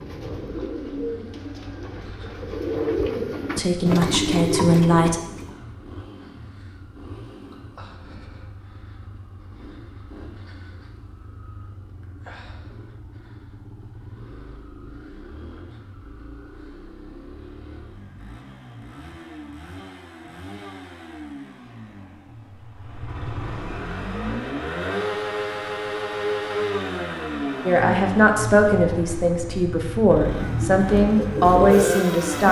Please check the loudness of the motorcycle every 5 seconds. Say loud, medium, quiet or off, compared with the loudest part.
quiet, quiet, quiet, quiet, medium, loud, loud.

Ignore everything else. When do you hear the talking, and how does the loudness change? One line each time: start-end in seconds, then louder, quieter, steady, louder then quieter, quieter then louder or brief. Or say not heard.
3.5-5.2 brief
27.6-32.4 quieter then louder.